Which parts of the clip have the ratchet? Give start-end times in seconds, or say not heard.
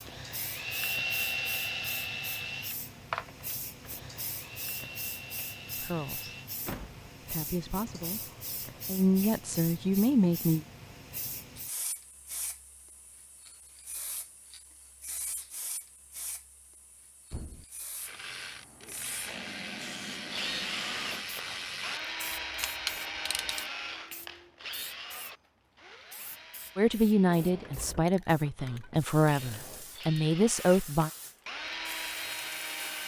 17.9-23.6.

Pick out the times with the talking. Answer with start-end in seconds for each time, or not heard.
5.8-6.3, 7.2-10.7, 26.8-31.1.